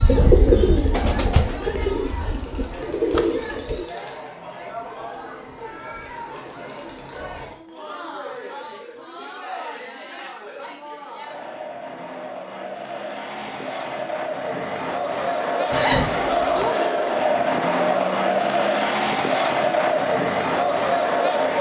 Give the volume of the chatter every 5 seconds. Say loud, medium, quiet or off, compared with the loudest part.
quiet, quiet, medium, loud, loud.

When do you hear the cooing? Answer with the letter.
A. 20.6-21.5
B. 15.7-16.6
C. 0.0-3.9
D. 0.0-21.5
C.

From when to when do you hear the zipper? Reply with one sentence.
The zipper can be heard from 15.7 to 16.6 s.